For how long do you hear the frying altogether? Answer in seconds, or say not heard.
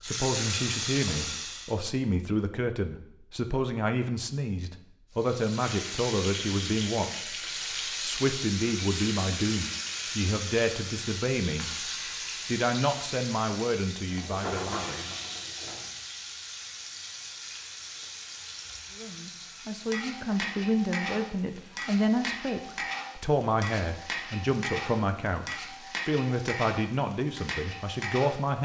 25 s.